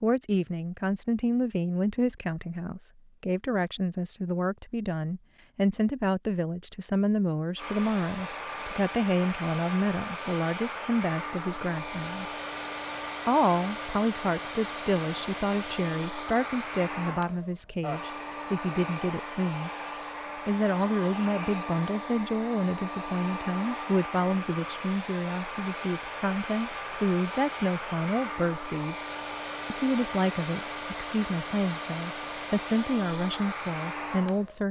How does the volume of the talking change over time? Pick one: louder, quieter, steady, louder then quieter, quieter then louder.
steady.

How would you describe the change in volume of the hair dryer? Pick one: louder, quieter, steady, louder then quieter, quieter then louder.
steady.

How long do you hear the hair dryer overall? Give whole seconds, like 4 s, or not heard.
27 s.